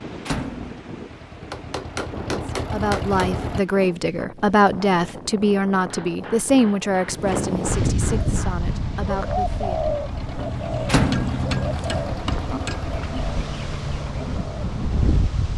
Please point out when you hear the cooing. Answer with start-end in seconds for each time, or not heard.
8.2-14.8.